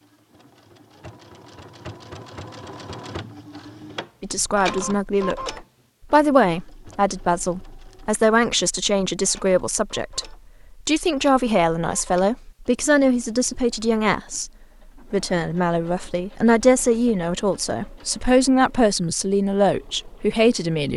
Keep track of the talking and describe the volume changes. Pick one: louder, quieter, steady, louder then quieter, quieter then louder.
steady.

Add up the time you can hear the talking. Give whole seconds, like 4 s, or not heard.
16 s.